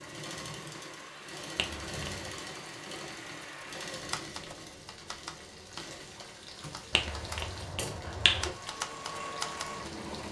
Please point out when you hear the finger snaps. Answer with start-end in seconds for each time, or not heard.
1.6-2.3, 6.9-8.6.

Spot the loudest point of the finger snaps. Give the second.
8 s.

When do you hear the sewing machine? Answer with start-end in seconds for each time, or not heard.
0.0-10.2.